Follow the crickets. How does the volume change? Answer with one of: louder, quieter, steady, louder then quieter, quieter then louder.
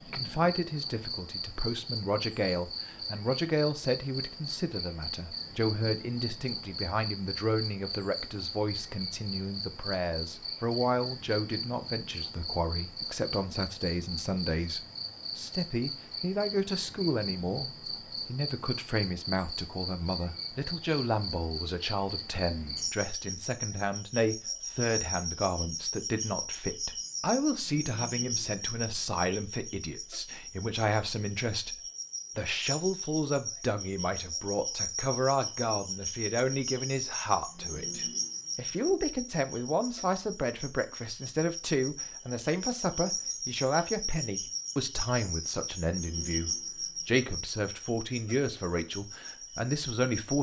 steady.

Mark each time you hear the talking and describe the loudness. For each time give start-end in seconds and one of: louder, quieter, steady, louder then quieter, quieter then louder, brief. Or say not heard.
0.1-31.8 steady
32.4-50.3 steady.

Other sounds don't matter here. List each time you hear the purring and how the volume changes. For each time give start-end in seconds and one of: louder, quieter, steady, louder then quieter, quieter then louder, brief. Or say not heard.
not heard.